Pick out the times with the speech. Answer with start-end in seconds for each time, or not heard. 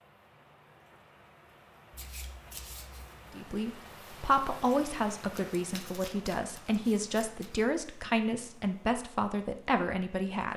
3.3-10.5.